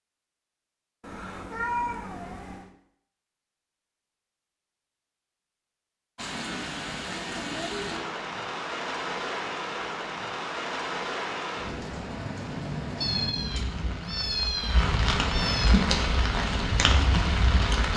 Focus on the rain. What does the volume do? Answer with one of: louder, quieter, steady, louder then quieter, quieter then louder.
louder.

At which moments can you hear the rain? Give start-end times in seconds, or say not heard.
6.2-17.9.